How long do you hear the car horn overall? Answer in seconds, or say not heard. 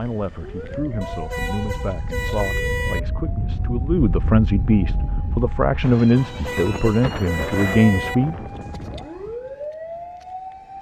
4 s.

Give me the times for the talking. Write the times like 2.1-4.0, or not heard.
0.0-8.3.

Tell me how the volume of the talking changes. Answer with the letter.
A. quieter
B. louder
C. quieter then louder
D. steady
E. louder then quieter
B.